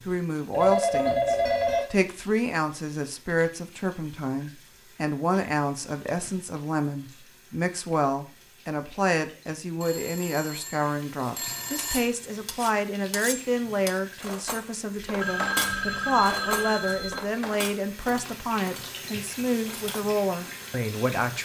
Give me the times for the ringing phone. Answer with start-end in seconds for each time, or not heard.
0.5-1.9, 9.8-12.1, 15.2-17.2.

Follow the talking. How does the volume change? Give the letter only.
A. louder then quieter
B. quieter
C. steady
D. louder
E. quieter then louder
C.